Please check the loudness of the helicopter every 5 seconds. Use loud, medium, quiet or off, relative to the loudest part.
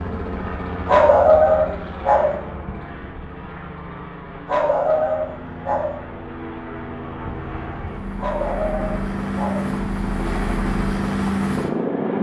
medium, medium, loud.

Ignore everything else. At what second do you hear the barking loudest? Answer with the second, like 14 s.
1 s.